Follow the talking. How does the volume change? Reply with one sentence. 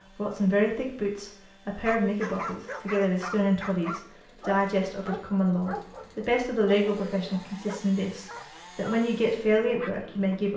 The loudness of the talking stays about the same.